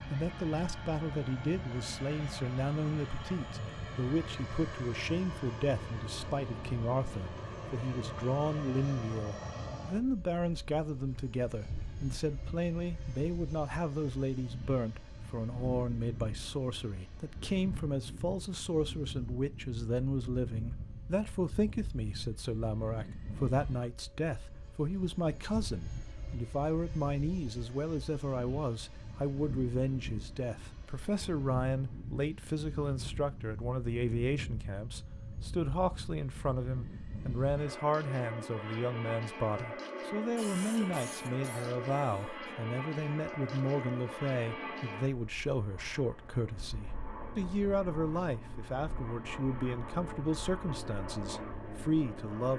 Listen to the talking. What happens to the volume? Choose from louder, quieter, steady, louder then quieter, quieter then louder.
steady.